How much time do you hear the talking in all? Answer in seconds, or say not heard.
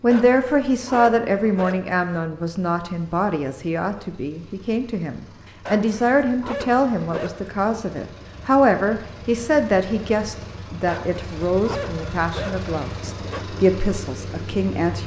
15 s.